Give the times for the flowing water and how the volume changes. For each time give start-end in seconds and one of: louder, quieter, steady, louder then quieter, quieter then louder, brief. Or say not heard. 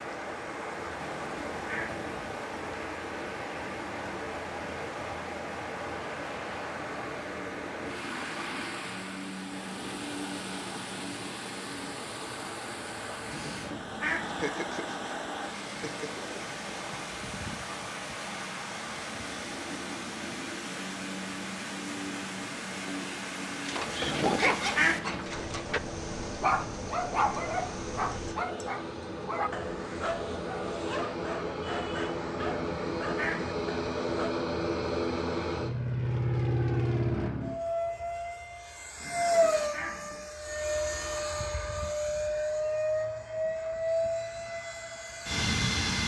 0.0-28.4 steady.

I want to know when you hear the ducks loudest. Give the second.
25 s.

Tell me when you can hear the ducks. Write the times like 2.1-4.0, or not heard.
0.9-2.0, 13.2-14.5, 24.0-25.2, 32.5-33.5, 39.0-40.2.